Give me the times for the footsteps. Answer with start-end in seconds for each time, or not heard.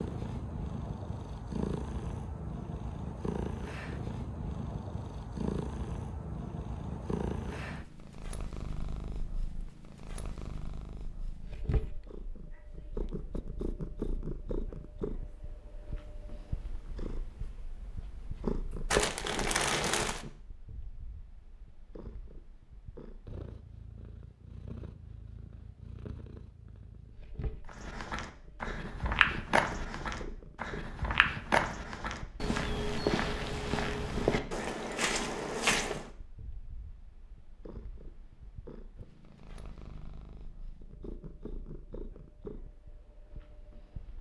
27.6-36.1.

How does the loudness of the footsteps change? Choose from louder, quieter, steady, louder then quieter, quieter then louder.
quieter then louder.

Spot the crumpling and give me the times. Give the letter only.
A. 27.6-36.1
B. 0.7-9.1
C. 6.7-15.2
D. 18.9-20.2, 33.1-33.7
D.